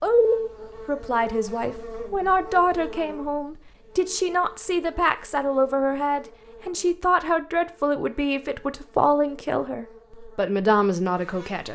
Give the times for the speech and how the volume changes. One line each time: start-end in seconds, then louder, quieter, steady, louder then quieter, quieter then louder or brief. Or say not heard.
0.0-11.6 steady.